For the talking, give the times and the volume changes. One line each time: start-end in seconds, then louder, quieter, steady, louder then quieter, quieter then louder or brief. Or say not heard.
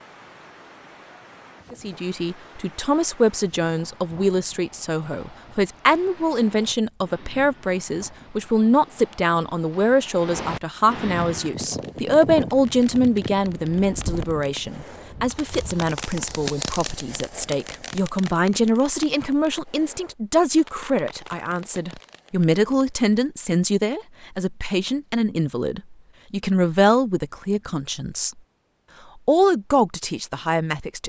1.7-28.4 steady
29.2-31.0 brief.